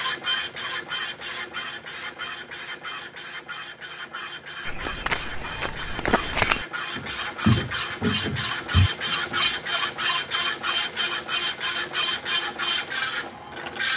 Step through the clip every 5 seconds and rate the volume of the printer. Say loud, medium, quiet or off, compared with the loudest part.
medium, loud, loud.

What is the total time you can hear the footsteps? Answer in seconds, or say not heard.
5 s.